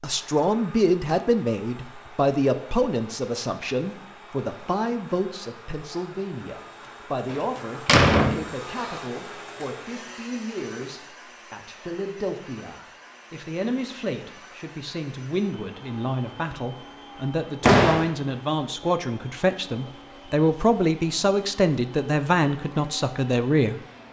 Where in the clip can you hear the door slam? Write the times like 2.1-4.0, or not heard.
7.2-8.9, 17.6-18.1.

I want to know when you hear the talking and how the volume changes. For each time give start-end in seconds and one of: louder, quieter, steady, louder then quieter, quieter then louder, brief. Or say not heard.
0.0-23.8 quieter then louder.